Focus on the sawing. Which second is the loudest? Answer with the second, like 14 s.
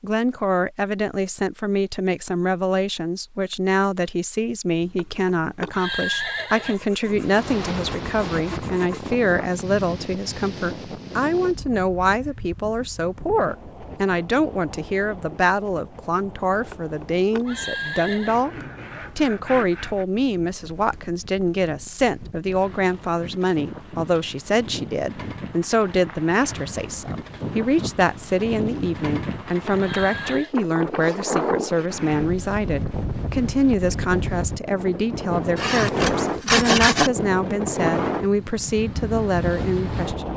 37 s.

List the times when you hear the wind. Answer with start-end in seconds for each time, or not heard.
7.0-40.3.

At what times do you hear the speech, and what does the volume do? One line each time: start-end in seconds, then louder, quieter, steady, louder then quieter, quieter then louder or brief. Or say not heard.
0.0-40.3 steady.